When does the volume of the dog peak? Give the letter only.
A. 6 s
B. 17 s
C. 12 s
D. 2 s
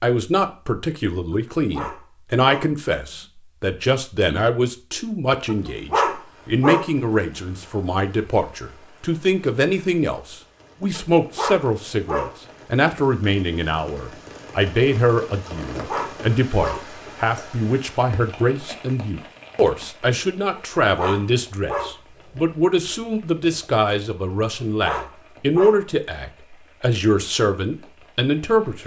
A.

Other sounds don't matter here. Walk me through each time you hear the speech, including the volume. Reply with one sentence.
You can hear the speech from 0.0 to 28.8 s, at a steady volume.